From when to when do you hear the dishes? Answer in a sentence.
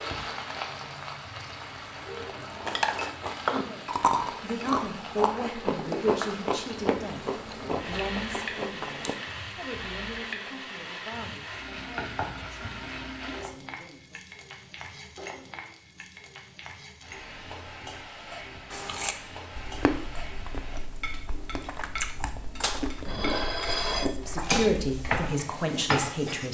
You can hear the dishes from 22.6 to 26.4 s.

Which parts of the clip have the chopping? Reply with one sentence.
You can't hear the chopping here.